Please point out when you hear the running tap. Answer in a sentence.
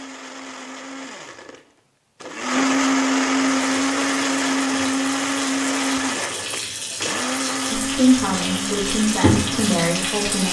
The running tap can be heard from 3.5 to 10.4 s.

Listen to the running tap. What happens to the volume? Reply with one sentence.
The volume of the running tap goes up.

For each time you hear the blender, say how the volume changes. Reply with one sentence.
The blender can be heard from 0.0 to 10.4 s, getting louder then quieter.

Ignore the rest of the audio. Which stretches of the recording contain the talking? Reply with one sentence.
The talking can be heard from 7.7 to 10.4 s.